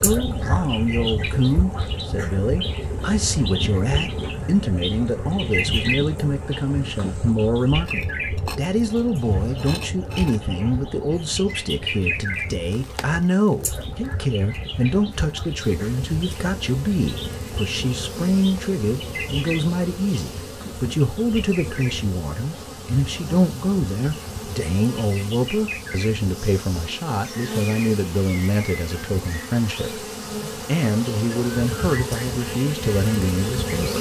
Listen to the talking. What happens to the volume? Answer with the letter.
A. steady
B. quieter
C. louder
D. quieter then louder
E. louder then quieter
A.